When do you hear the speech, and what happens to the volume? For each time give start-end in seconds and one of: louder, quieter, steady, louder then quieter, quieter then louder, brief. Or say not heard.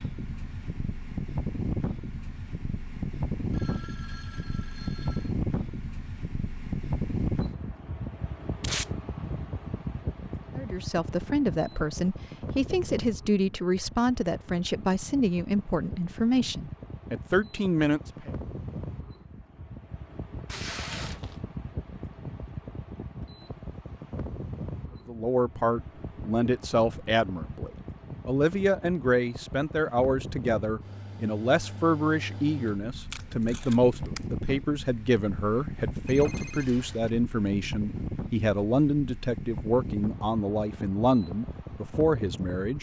10.6-18.3 steady
25.1-42.7 steady.